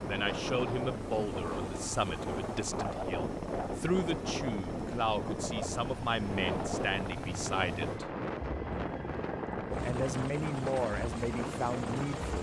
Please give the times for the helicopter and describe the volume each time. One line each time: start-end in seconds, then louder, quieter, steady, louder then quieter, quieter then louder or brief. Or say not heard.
0.0-12.3 steady.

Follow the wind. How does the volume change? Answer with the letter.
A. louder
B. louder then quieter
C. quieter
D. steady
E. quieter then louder
D.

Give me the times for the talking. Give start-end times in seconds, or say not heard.
0.0-8.1, 9.8-12.3.